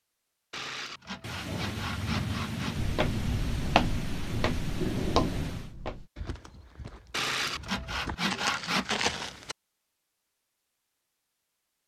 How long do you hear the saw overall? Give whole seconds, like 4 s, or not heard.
4 s.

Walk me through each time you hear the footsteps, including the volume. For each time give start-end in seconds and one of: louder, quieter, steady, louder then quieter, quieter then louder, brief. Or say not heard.
2.8-9.6 quieter then louder.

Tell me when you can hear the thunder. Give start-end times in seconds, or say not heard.
1.2-5.8.